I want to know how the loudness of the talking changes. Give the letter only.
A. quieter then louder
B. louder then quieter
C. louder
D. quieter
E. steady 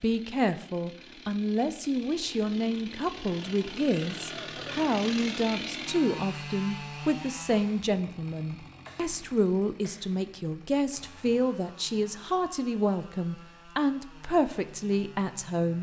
E.